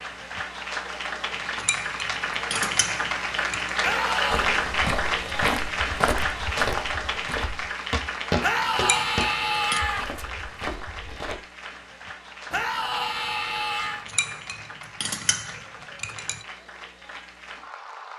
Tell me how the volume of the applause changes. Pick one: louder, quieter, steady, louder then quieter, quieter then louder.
quieter.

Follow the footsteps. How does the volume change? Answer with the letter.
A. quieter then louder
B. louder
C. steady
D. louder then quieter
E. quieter
E.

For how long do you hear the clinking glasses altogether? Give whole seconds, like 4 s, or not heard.
6 s.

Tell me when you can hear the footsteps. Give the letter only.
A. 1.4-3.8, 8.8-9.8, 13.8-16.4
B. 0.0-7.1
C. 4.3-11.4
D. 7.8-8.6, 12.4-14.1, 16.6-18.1
C.